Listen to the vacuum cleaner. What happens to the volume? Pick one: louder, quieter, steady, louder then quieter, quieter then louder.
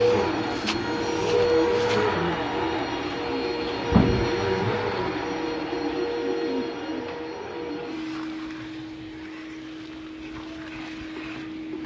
quieter.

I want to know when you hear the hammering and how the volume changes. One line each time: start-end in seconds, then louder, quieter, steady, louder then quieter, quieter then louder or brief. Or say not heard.
not heard.